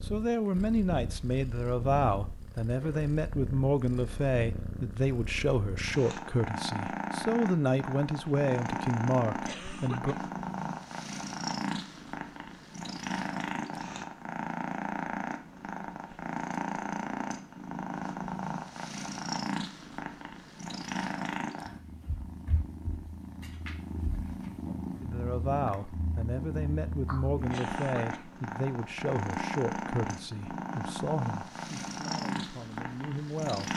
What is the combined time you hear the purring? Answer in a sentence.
You can hear the purring for 34 seconds altogether.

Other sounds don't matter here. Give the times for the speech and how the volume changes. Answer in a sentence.
You can hear the speech from 0.0 to 10.2 s, at a steady volume; and from 25.0 to 33.7 s, getting quieter.